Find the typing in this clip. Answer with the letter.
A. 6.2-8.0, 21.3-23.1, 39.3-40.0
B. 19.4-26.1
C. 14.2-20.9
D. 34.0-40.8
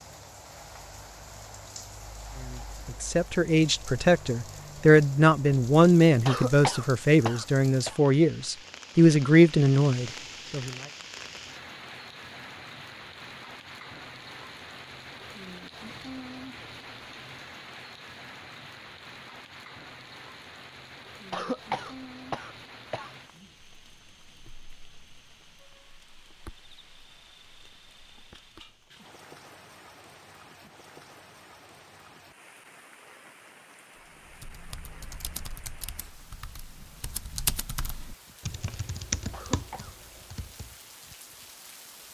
D.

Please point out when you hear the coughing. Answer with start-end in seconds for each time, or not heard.
6.2-8.0, 21.3-23.1, 39.3-40.0.